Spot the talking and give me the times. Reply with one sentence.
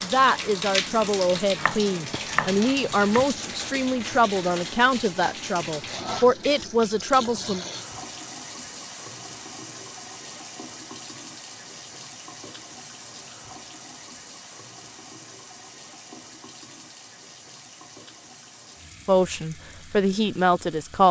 You can hear the talking from 0.0 to 7.7 s and from 19.1 to 21.0 s.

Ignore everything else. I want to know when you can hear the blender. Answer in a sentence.
The blender can't be heard in this clip.